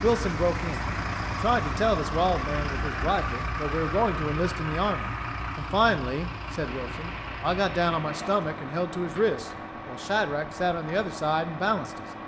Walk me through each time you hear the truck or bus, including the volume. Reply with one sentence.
You can hear the truck or bus from 0.0 to 12.2 s, getting quieter.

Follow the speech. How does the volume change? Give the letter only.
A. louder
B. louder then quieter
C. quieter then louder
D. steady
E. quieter
D.